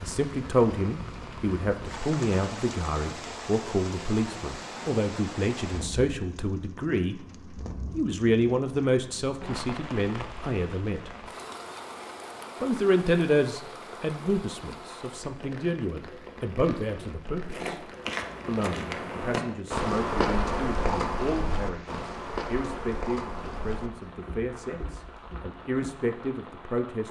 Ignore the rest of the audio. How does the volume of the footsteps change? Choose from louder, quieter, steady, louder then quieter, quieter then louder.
louder then quieter.